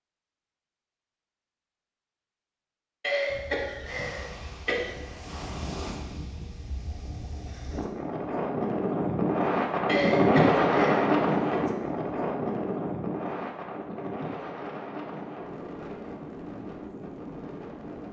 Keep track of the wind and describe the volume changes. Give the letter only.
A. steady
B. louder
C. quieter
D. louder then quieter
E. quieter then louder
D.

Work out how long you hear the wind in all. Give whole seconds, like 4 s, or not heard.
15 s.